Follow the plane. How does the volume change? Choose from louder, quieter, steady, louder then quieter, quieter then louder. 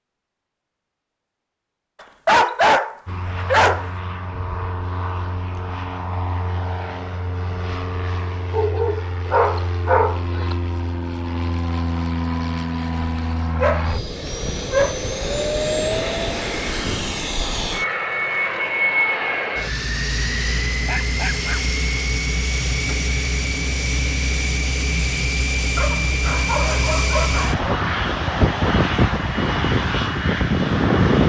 louder.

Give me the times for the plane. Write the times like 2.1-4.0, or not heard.
3.0-31.2.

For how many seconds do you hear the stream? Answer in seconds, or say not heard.
not heard.